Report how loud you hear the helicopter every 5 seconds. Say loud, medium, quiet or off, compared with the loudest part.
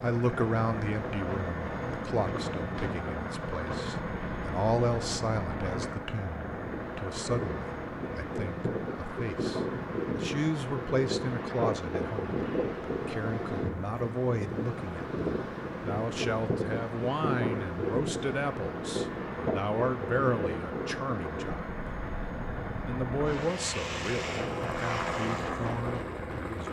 loud, loud, medium, medium, loud, loud.